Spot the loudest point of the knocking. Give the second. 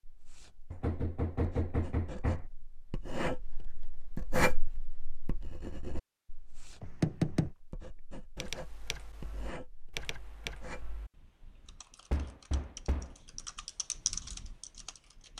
7 s.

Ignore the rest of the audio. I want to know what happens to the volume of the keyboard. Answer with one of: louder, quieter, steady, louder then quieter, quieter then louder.
quieter then louder.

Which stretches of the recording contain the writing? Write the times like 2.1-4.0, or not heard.
0.0-11.0.